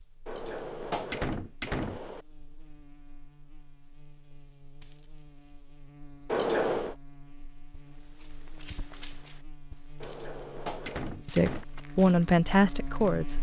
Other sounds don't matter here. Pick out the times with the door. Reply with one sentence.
You can hear the door from 0.2 to 2.2 s, from 6.2 to 7.0 s and from 10.0 to 11.7 s.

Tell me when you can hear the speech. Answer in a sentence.
You can hear the speech from 11.2 to 13.3 s.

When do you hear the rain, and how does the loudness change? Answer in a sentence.
You can't hear the rain here.